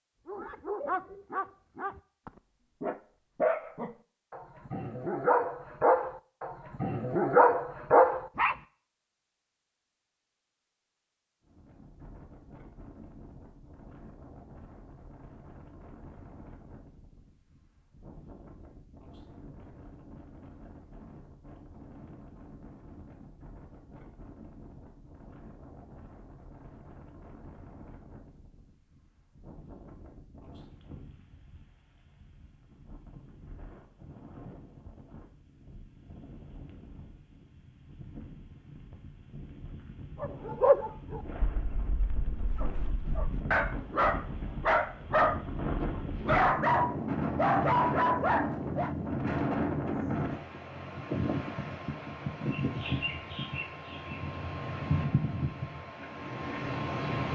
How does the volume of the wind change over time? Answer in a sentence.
The loudness of the wind goes up.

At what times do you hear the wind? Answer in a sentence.
You can hear the wind from 11.4 to 57.3 s.